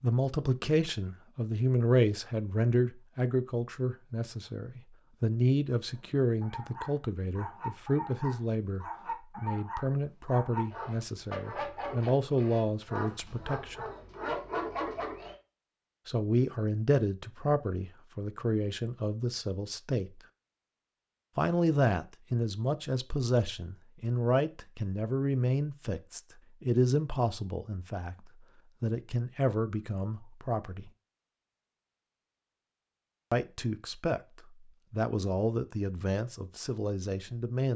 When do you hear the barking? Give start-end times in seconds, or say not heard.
5.9-15.3.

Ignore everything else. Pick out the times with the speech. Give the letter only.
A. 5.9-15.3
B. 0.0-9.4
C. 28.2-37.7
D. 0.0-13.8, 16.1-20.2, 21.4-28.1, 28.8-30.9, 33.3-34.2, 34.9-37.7
D.